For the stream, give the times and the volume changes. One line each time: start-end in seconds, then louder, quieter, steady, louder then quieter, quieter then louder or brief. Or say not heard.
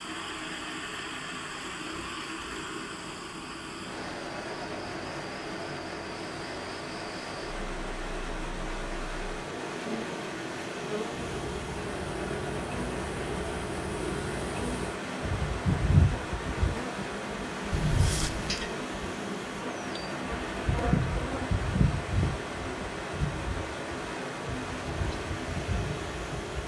0.0-26.6 steady.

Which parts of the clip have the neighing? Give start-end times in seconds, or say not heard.
17.7-18.6.